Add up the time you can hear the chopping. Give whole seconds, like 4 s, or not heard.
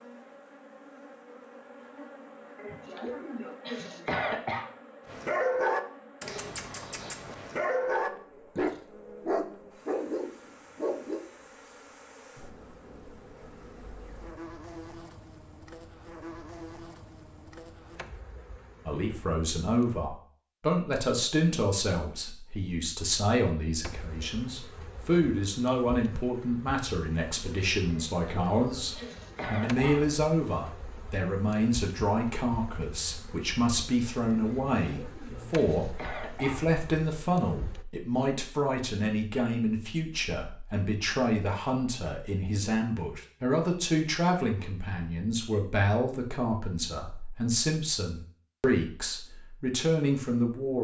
not heard.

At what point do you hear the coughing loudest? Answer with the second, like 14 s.
4 s.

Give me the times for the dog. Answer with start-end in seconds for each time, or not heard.
5.0-11.2.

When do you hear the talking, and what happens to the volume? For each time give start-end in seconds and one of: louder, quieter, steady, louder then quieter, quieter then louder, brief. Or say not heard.
18.9-50.7 steady.